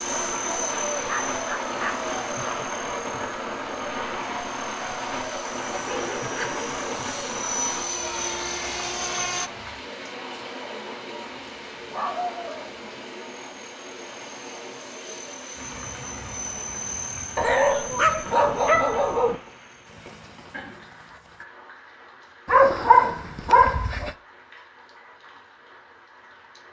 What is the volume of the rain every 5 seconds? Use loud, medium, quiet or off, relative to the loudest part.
loud, loud, medium, medium, quiet, quiet.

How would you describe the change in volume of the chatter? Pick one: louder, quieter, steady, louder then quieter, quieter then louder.
quieter.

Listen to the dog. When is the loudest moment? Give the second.
23 s.